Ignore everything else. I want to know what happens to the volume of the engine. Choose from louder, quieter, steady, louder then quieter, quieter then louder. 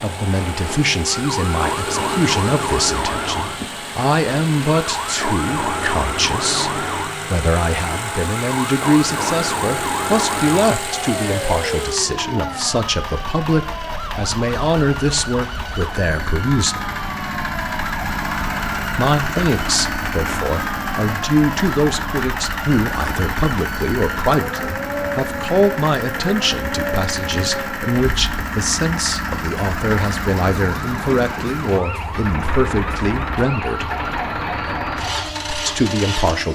steady.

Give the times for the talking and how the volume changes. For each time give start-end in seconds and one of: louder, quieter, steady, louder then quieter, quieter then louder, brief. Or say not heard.
0.0-16.9 steady
18.9-33.9 steady
35.5-36.4 brief.